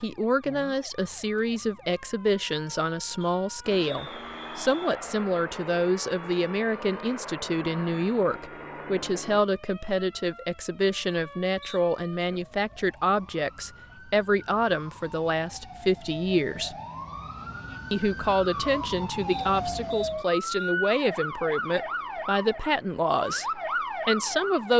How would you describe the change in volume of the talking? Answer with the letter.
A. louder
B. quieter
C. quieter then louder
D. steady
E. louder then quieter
D.